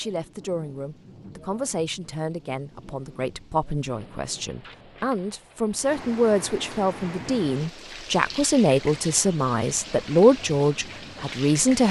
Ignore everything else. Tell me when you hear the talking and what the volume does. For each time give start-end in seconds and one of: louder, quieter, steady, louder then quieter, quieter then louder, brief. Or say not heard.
0.0-11.8 louder.